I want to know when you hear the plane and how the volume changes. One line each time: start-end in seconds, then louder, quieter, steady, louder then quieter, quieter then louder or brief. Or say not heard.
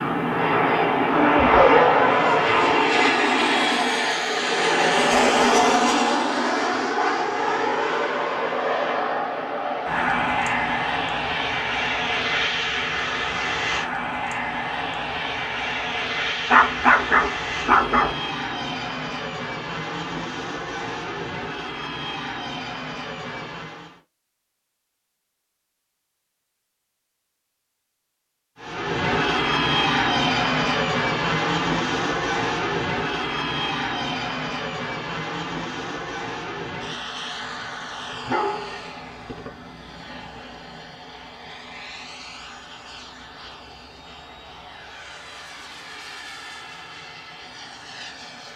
0.0-24.0 quieter
28.6-48.5 quieter.